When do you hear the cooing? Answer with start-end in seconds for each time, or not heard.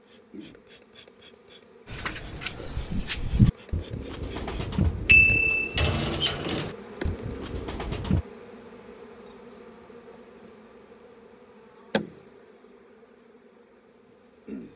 1.9-8.2.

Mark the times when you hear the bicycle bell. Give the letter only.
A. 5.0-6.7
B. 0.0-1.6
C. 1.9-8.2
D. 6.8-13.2
A.